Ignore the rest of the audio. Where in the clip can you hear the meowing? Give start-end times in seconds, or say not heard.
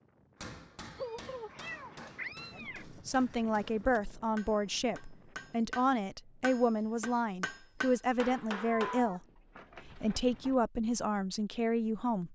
0.9-2.9, 8.7-10.6.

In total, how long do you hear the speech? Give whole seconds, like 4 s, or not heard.
9 s.